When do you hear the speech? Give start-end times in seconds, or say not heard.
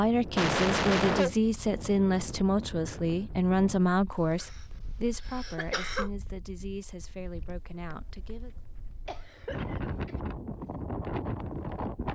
0.0-8.5.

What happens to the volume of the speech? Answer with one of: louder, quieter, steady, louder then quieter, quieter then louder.
quieter.